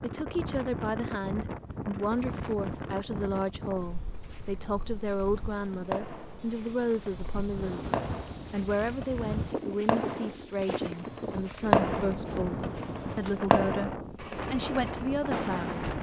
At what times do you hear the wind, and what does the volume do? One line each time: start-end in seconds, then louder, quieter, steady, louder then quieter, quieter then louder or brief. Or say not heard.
0.0-15.9 quieter then louder.